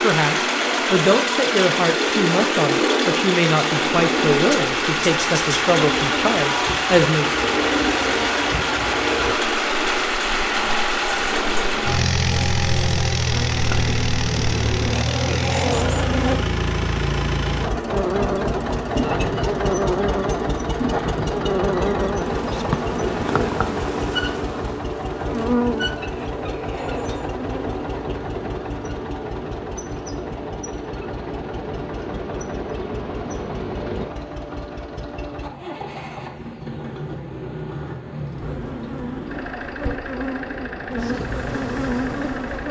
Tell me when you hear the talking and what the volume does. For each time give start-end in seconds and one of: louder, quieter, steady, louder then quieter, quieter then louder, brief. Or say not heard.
0.0-7.4 steady.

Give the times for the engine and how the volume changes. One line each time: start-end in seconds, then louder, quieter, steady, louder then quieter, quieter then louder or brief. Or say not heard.
0.0-42.6 quieter.